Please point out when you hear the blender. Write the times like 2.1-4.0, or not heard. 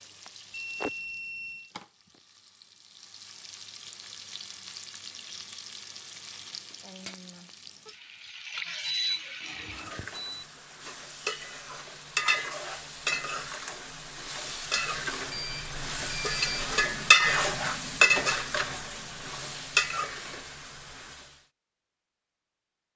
not heard.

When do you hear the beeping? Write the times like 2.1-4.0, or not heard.
0.5-1.7, 8.8-10.4, 15.3-16.6.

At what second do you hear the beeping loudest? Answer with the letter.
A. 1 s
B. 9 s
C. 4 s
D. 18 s
B.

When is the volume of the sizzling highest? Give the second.
18 s.